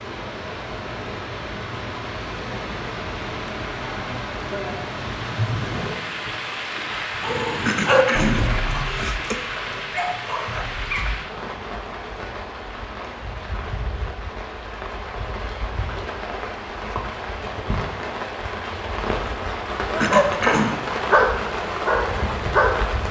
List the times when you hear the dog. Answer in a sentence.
You can hear the dog from 7.2 to 11.2 s and from 19.9 to 22.9 s.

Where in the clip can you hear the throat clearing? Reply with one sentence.
You can hear the throat clearing from 7.7 to 9.4 s and from 20.0 to 20.8 s.